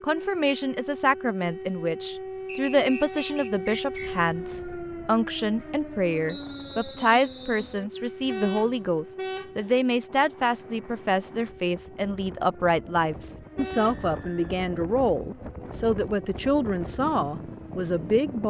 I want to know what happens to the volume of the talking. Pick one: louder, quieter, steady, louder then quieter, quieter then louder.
steady.